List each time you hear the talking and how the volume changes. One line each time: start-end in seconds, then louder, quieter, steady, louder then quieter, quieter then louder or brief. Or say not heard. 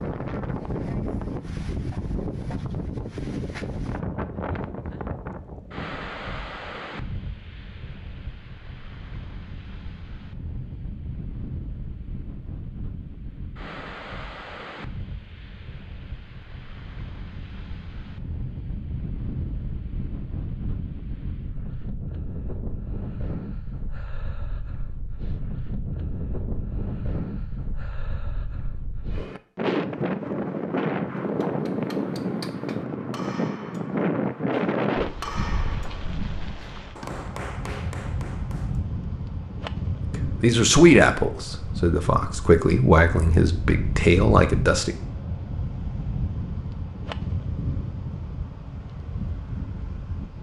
40.1-45.0 quieter then louder.